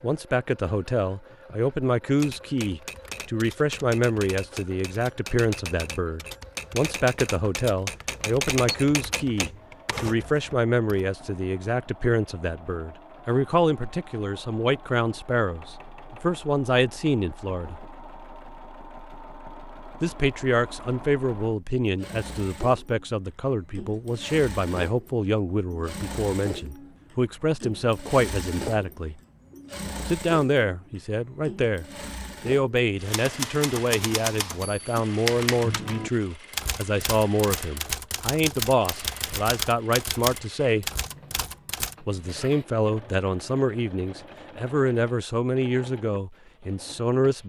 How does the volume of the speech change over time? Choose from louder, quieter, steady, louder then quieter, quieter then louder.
steady.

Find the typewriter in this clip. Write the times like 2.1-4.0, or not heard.
2.1-11.1, 33.0-42.0.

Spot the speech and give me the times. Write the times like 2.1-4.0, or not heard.
0.0-17.8, 20.0-29.2, 30.1-40.9, 42.0-47.4.